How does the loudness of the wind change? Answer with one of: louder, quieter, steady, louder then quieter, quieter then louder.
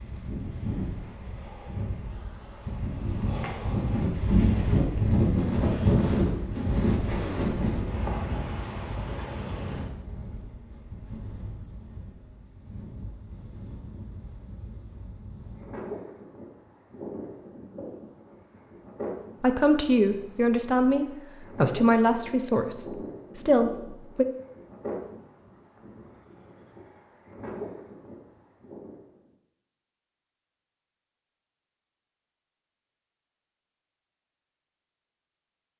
quieter.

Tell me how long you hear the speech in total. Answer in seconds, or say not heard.
5 s.